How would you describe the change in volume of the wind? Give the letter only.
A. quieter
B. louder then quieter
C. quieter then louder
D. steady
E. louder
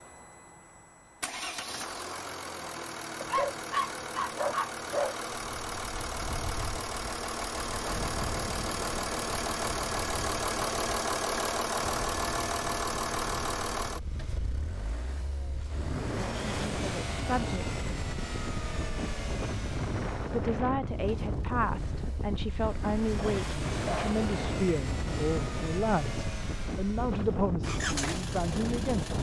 E.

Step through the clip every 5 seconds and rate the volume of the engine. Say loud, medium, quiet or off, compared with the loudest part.
medium, loud, loud, medium, medium, medium.